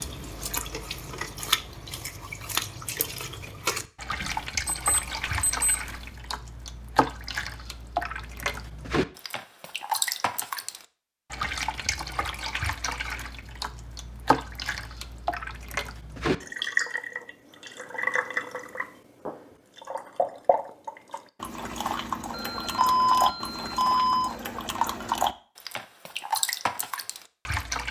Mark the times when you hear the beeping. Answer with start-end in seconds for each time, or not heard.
4.2-6.0, 22.3-24.4.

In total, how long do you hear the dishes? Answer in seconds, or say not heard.
not heard.